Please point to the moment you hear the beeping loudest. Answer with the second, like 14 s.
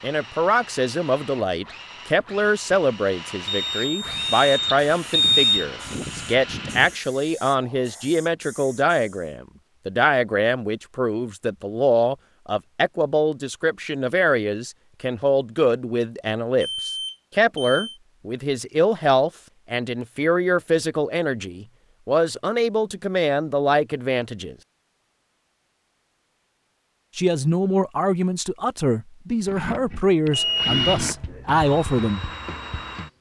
5 s.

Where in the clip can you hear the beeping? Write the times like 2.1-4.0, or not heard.
3.5-5.7, 16.6-18.0, 30.3-31.1.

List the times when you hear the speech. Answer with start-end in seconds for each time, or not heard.
0.0-24.6, 27.1-32.3.